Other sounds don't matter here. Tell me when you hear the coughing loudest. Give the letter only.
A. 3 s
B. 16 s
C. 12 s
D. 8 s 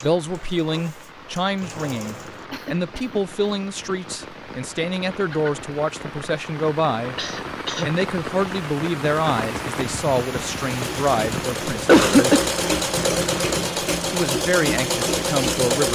C.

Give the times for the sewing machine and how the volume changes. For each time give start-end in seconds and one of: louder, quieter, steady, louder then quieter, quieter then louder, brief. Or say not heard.
0.0-2.5 brief
10.6-15.9 louder.